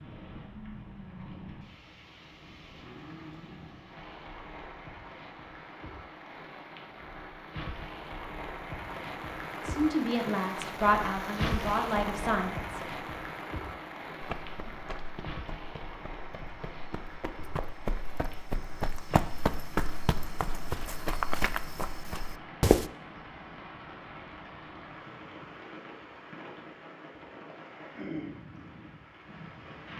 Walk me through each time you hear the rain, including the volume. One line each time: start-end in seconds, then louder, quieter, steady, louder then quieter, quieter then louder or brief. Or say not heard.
0.0-29.9 louder then quieter.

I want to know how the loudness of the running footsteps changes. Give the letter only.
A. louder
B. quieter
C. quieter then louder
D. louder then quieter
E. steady
A.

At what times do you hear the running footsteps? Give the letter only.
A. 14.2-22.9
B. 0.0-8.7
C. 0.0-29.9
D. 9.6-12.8
A.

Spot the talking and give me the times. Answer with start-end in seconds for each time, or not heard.
9.6-12.8.